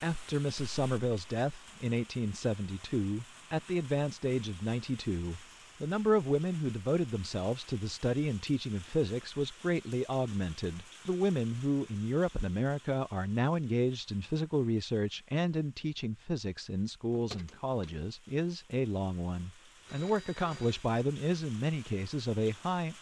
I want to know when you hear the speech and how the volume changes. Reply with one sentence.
The speech can be heard from 0.0 to 22.9 s, at a steady volume.